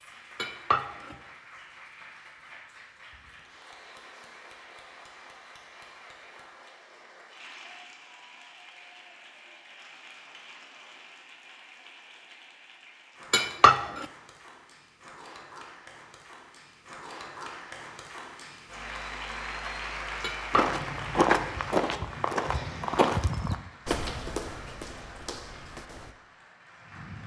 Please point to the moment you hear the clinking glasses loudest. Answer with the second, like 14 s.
14 s.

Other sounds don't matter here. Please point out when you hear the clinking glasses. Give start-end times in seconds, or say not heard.
0.3-1.1, 13.3-14.1, 20.2-20.8.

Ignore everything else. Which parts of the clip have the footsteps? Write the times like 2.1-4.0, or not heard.
20.5-26.1.